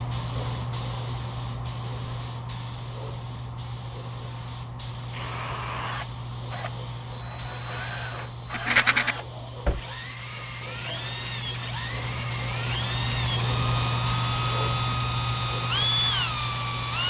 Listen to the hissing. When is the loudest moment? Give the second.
14 s.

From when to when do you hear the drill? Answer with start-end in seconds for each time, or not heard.
5.1-17.0.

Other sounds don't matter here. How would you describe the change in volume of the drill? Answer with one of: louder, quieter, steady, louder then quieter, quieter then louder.
louder.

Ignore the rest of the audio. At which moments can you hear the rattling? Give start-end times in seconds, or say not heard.
8.5-9.2.